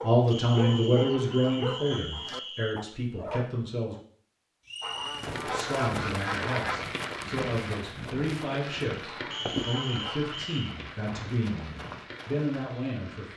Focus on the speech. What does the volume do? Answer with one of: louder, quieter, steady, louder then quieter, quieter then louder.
quieter.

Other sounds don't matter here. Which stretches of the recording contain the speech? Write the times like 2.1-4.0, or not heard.
0.0-4.0, 5.4-13.3.